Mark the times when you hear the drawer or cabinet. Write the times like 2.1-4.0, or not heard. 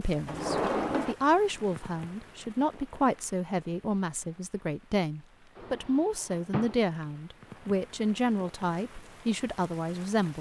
0.2-1.1, 5.5-7.0.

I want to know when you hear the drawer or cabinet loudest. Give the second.
1 s.